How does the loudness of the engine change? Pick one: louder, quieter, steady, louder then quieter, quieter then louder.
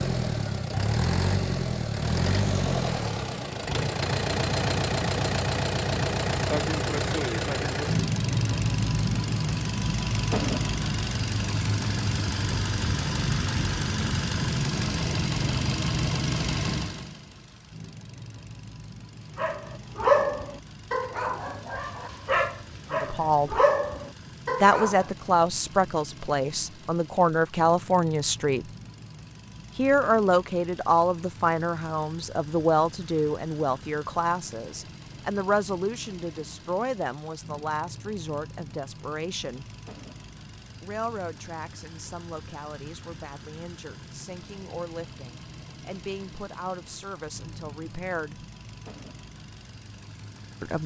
quieter.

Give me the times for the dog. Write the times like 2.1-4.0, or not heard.
19.4-25.1.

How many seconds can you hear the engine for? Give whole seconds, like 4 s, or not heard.
51 s.